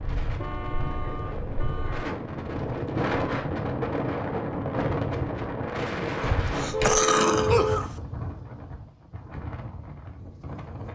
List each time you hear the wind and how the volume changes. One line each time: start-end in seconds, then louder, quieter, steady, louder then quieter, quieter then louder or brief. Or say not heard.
0.0-10.8 louder then quieter.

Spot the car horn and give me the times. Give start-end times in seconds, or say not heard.
0.3-2.1, 6.7-7.8.